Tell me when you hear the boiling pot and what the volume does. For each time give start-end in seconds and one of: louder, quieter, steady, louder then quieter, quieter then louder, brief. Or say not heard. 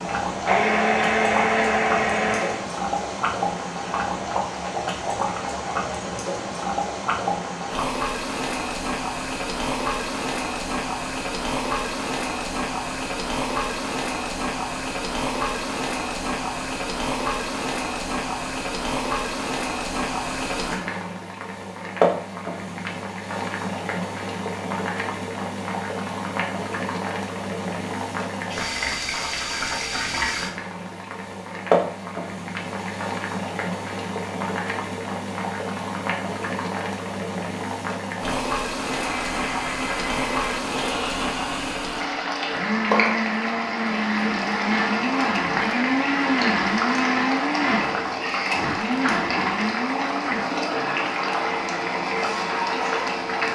0.0-53.4 steady.